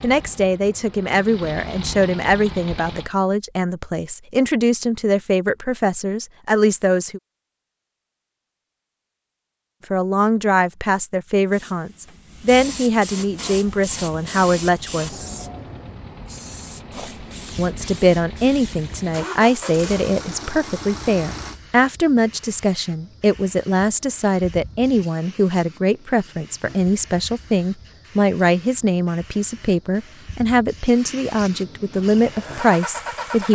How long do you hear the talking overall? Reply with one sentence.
You can hear the talking for 28 seconds altogether.